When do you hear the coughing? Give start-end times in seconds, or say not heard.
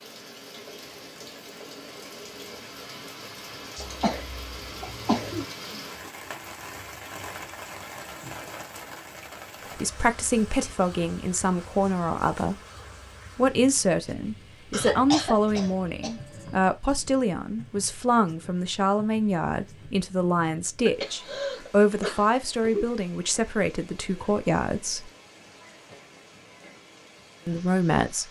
3.8-5.5, 14.7-16.5, 20.9-22.9.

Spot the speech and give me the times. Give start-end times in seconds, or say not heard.
9.8-12.6, 13.3-25.1, 27.4-28.2.